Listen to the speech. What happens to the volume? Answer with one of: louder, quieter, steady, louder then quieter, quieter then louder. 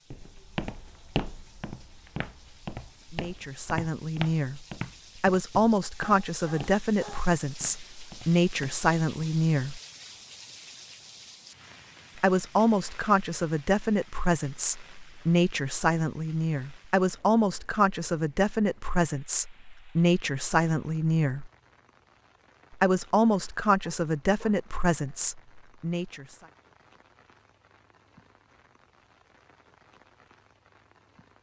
steady.